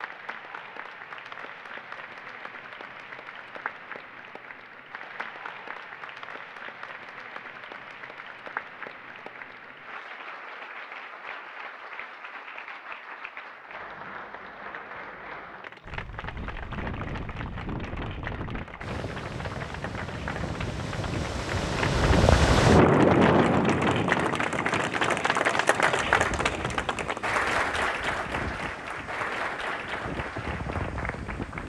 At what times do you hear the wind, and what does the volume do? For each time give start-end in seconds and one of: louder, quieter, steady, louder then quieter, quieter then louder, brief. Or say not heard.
15.8-31.6 louder then quieter.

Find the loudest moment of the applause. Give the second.
26 s.